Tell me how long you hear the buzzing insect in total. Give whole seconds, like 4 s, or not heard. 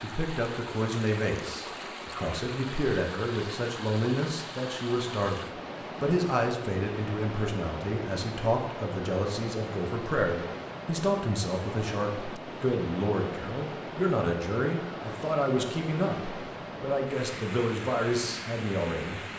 not heard.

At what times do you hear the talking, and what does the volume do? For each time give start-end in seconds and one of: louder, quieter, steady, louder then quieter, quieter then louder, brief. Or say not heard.
0.0-19.2 steady.